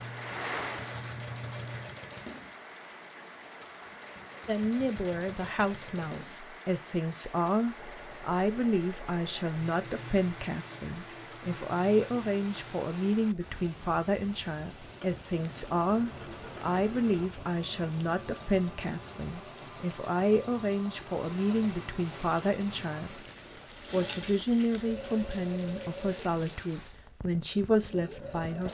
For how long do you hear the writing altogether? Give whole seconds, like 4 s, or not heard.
2 s.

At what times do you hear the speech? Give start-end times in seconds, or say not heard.
4.5-23.2, 23.9-28.7.